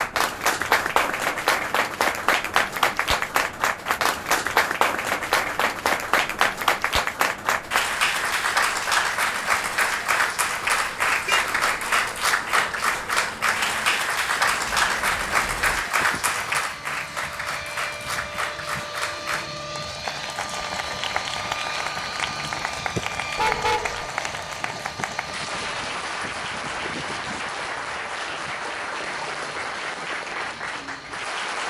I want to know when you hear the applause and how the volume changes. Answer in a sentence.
The applause can be heard from 0.0 to 31.6 s, getting quieter.